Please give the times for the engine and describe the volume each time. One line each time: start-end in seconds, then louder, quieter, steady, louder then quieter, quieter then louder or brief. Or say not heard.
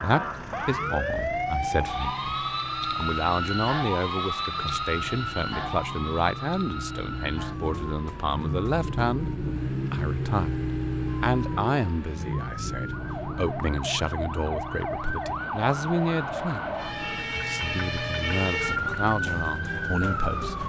0.0-20.6 louder then quieter.